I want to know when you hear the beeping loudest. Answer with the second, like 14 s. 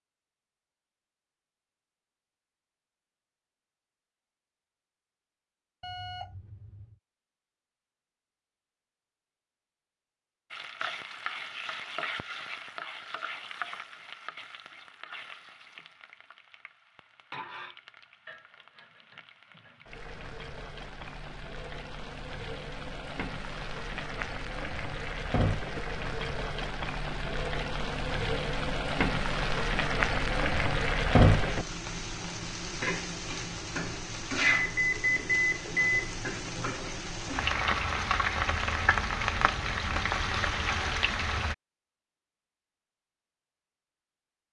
35 s.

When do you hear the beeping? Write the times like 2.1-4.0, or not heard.
5.8-7.0, 34.5-35.9.